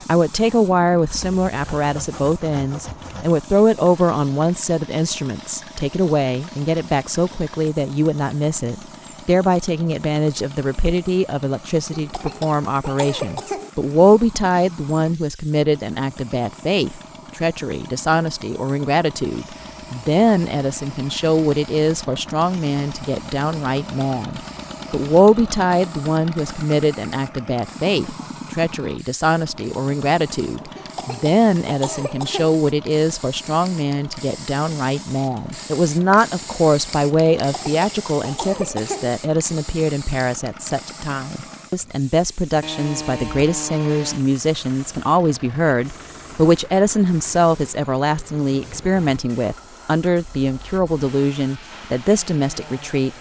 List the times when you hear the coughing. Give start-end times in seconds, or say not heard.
11.9-13.7, 30.8-32.5, 37.5-39.1.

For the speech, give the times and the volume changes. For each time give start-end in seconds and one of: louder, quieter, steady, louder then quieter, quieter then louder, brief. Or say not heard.
0.1-53.1 steady.